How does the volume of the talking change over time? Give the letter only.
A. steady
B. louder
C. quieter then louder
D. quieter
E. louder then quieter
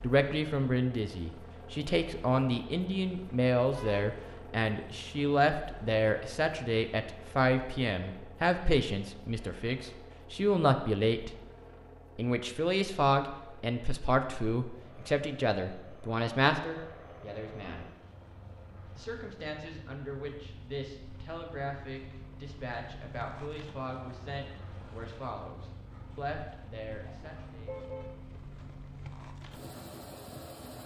D.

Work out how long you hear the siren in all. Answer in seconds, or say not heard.
not heard.